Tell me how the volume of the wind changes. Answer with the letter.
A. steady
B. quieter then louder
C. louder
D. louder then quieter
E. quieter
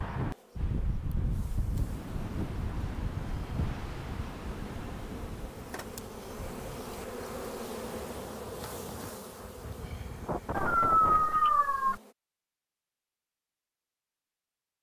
B.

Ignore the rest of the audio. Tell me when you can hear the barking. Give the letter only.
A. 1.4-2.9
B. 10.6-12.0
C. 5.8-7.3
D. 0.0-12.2
B.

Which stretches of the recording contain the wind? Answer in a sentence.
You can hear the wind from 0.0 to 11.5 s.